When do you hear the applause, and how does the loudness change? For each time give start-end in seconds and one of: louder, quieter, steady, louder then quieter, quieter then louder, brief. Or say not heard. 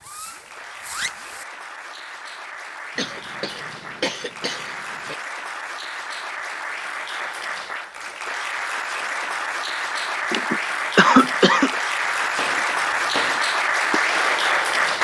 0.0-14.9 louder.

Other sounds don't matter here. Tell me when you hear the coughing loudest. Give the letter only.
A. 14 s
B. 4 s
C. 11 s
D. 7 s
C.